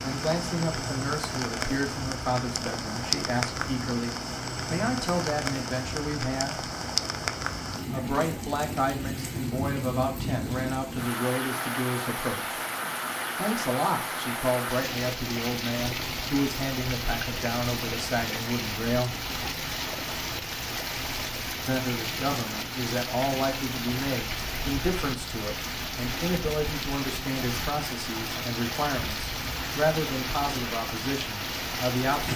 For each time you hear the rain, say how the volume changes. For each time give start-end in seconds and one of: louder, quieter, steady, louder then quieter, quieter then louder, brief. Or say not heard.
0.0-32.3 steady.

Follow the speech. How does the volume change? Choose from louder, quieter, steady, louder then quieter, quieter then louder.
steady.